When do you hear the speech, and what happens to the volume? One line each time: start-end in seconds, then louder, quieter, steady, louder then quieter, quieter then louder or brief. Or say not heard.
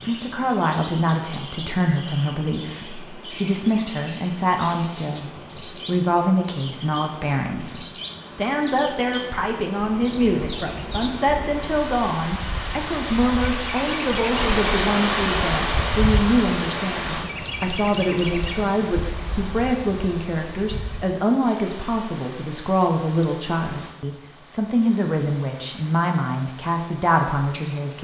0.1-27.9 steady.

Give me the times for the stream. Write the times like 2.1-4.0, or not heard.
0.0-27.9.